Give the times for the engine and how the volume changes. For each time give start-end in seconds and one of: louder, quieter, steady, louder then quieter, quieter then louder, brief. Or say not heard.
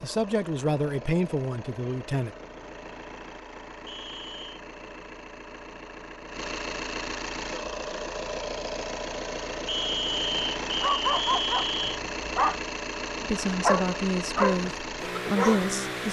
0.0-16.0 louder.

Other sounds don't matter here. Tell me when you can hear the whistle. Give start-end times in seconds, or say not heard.
3.9-4.6, 9.7-12.0.